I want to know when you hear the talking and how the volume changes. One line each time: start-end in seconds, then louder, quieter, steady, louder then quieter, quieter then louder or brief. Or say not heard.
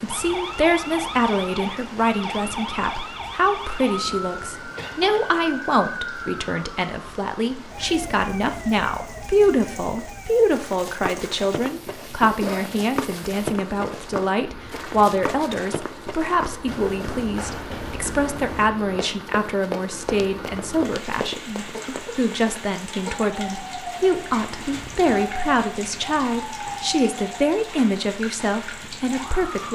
0.0-29.7 steady.